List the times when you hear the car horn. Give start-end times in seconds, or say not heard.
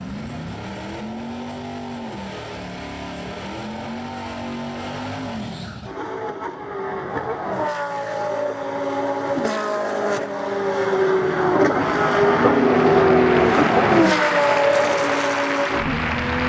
not heard.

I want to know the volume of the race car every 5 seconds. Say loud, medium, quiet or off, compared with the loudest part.
quiet, medium, loud, medium.